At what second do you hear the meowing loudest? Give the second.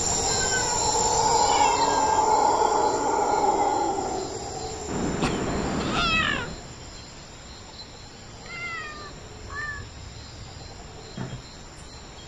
6 s.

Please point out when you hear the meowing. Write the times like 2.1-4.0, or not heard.
0.2-2.2, 4.8-6.6, 8.4-9.8.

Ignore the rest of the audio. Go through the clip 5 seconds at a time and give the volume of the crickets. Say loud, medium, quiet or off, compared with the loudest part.
loud, quiet, quiet.